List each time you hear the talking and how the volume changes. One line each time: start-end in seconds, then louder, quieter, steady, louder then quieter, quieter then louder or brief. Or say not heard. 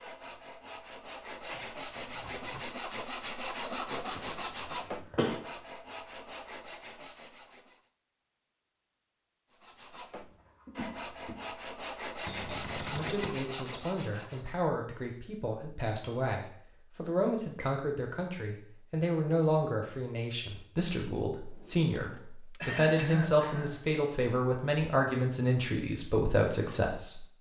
12.3-27.2 louder.